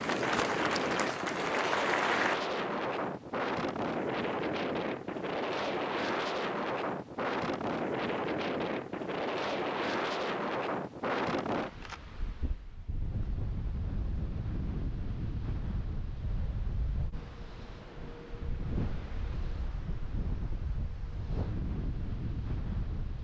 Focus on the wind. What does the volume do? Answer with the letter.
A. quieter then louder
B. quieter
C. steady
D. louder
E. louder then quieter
B.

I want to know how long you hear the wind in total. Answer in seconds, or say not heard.
23 s.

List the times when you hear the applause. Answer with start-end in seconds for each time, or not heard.
0.0-2.4.